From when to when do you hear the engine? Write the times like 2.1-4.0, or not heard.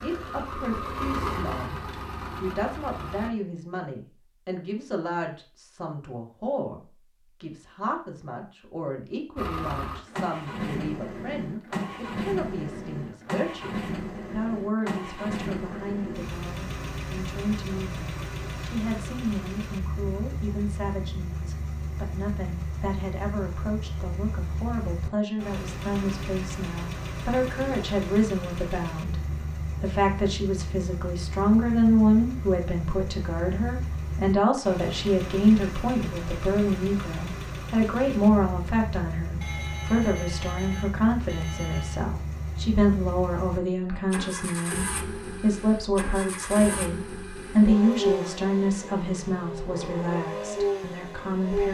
0.0-3.3, 9.3-51.6.